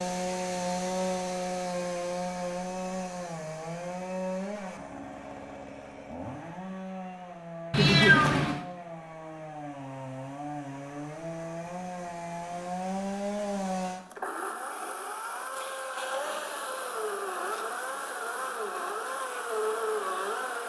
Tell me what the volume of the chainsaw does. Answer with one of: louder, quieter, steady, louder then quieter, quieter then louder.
quieter then louder.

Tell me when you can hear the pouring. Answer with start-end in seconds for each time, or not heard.
not heard.